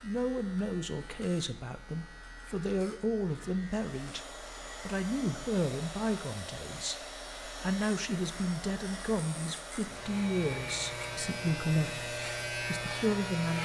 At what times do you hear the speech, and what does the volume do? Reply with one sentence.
The speech can be heard from 0.0 to 13.6 s, at a steady volume.